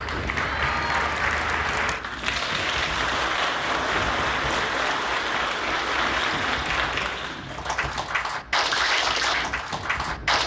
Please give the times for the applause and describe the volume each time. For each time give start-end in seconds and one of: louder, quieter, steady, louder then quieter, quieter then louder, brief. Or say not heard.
0.0-10.4 steady.